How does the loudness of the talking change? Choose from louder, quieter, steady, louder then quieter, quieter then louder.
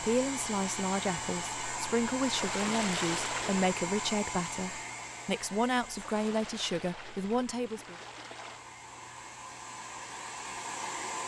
steady.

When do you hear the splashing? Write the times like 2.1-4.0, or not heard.
2.2-3.8, 5.8-8.7.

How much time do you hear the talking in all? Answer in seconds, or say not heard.
8 s.